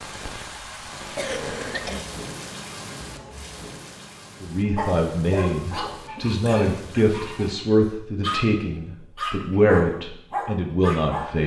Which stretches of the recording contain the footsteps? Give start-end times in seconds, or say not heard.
not heard.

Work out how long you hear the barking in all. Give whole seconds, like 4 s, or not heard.
7 s.